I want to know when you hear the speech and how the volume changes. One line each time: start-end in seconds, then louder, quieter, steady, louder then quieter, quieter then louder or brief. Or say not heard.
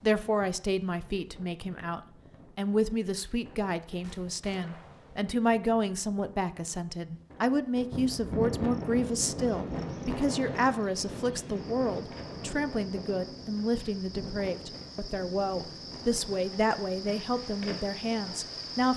0.0-18.9 steady.